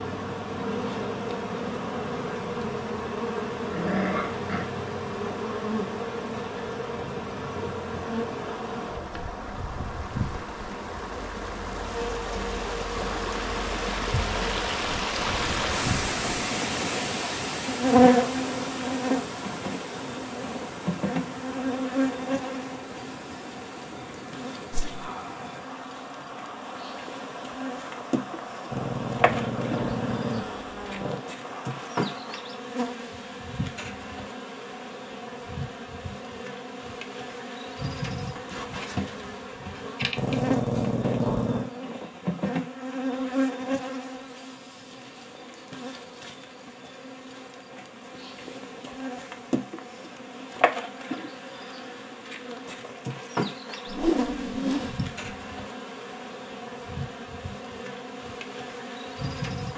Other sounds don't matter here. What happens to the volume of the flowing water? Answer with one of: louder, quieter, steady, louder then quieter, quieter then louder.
louder then quieter.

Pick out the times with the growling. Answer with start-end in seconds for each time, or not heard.
3.6-4.7, 28.7-31.2, 40.1-41.8.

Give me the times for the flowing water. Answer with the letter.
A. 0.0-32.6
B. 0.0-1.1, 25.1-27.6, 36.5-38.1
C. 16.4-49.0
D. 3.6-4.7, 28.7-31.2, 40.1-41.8
A.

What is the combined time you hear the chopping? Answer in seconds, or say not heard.
not heard.